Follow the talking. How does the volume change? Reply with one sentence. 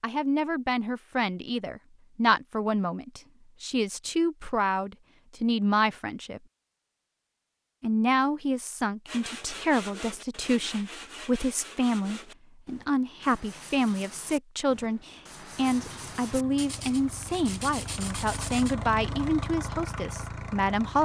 The loudness of the talking stays about the same.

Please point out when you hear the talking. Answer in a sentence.
The talking can be heard from 0.0 to 6.4 s and from 7.8 to 21.0 s.